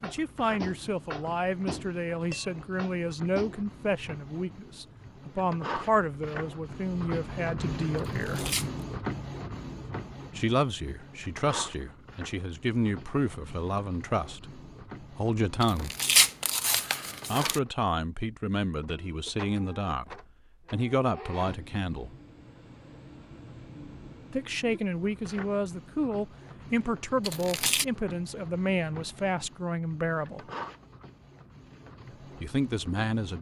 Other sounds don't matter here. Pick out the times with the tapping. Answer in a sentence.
The tapping can be heard from 0.0 to 3.6 s.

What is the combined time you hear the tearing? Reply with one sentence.
You can hear the tearing for 3 seconds altogether.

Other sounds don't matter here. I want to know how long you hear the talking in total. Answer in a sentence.
The talking can be heard for 26 seconds in total.